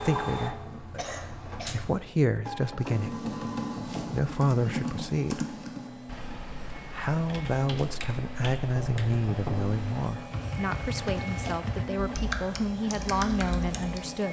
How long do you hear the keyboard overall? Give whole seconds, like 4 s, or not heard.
11 s.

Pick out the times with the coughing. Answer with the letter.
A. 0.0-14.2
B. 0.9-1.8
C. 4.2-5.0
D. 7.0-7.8
B.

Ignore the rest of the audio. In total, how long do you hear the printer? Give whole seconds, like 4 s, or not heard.
14 s.